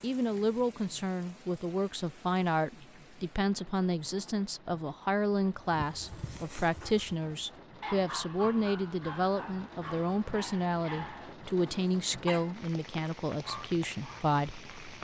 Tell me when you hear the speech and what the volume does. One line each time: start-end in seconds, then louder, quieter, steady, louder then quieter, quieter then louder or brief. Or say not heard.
0.0-14.9 steady.